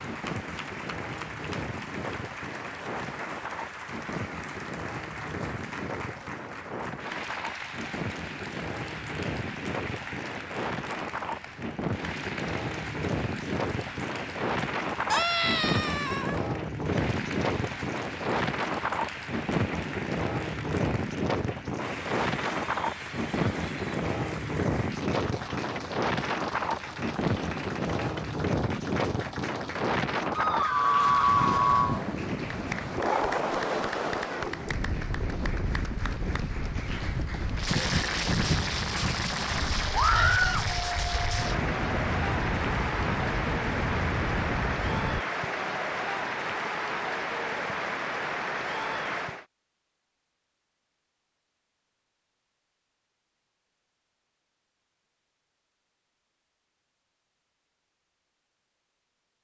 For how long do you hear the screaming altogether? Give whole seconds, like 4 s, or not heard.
4 s.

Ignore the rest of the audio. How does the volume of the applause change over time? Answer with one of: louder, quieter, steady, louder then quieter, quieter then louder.
louder.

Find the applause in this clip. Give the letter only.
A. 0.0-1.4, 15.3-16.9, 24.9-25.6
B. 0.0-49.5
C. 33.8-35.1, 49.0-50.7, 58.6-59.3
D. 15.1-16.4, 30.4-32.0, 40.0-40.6
B.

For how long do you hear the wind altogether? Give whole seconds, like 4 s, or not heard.
45 s.